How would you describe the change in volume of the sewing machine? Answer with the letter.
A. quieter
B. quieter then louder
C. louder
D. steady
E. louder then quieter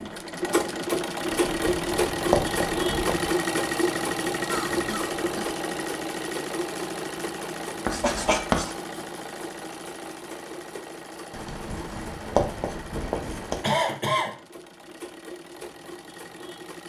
A.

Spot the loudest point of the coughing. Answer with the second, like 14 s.
14 s.